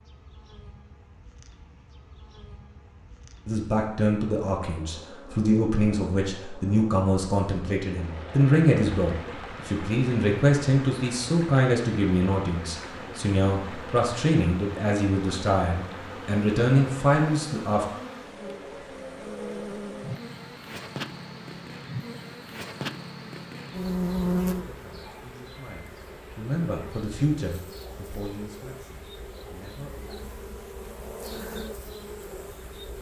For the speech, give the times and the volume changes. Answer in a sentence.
You can hear the speech from 3.5 to 17.9 s, at a steady volume; and from 24.6 to 30.1 s, getting louder then quieter.